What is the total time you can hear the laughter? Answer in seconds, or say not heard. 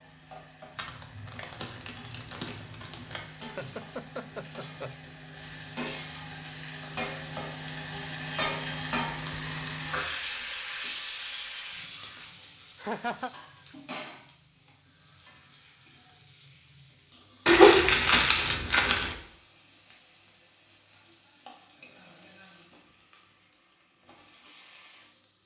2 s.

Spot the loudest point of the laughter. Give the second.
13 s.